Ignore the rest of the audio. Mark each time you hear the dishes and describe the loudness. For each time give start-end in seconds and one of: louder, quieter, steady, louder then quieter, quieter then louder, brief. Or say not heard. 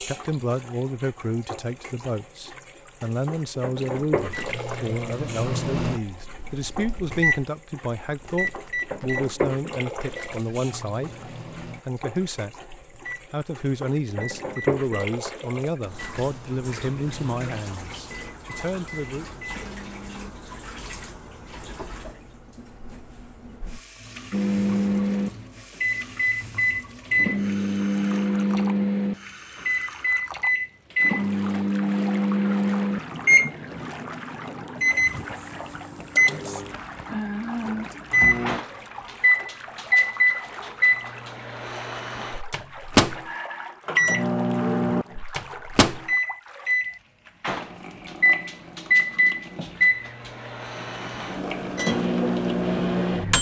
not heard.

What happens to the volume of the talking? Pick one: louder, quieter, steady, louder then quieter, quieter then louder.
steady.